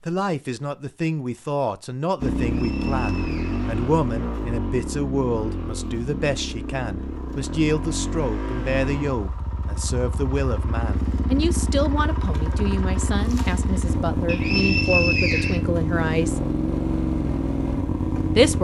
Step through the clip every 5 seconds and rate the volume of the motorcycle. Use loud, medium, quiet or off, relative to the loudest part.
loud, medium, loud, loud.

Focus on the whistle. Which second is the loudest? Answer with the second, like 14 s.
15 s.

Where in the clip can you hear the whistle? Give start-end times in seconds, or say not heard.
2.5-3.7, 14.2-15.6.